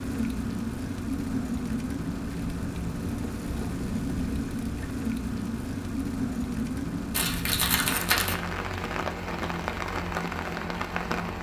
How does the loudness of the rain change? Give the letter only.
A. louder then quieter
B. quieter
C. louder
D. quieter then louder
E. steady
E.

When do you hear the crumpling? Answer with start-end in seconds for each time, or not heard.
7.1-8.3.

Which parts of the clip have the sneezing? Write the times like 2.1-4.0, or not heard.
not heard.